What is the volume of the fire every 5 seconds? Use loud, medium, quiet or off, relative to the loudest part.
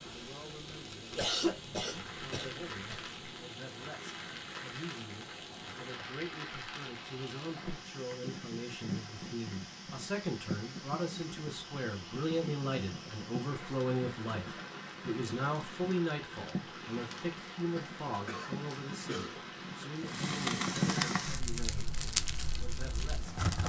quiet, medium, medium, medium, loud.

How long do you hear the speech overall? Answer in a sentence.
The speech can be heard for 23 seconds in total.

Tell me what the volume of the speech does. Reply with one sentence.
The loudness of the speech goes up, then down.